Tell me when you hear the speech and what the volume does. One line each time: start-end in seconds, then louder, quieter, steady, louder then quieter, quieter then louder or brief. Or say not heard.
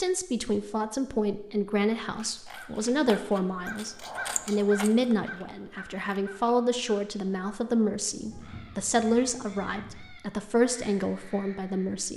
0.0-12.1 steady.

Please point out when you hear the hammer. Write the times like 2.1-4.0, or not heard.
not heard.